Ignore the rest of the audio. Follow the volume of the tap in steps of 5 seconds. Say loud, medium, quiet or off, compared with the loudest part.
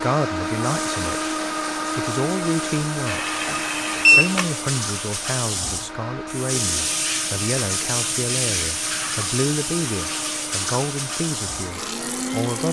medium, loud, loud.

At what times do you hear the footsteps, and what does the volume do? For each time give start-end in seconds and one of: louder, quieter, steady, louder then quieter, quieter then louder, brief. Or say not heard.
not heard.